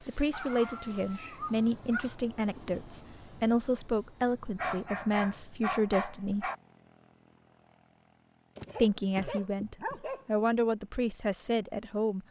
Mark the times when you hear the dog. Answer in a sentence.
The dog can be heard from 0.3 to 2.1 s, from 4.5 to 6.5 s and from 8.6 to 10.6 s.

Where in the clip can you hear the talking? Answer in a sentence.
You can hear the talking from 0.1 to 6.5 s and from 8.8 to 12.2 s.